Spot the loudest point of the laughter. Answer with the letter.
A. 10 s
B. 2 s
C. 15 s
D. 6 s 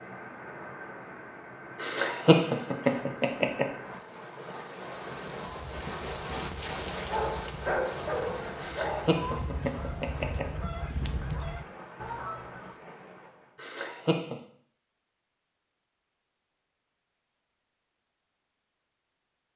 B.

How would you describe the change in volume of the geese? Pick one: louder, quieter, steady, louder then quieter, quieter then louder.
louder.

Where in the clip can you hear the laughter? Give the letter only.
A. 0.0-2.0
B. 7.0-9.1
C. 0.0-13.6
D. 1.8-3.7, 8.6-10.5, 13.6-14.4
D.